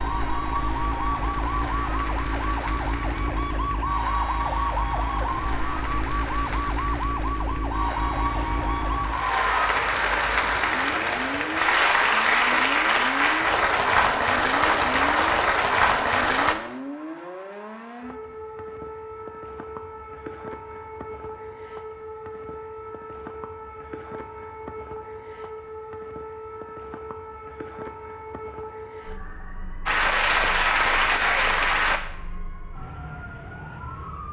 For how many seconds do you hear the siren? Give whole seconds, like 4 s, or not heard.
34 s.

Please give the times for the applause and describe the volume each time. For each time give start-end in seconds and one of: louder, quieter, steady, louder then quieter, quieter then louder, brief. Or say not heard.
0.0-16.6 louder
29.9-32.0 brief.